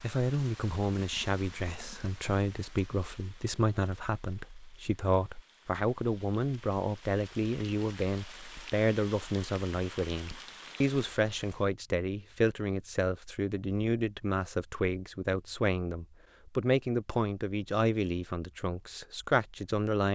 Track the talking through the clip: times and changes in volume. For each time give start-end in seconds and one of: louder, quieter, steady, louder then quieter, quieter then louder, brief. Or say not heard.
0.0-20.1 steady.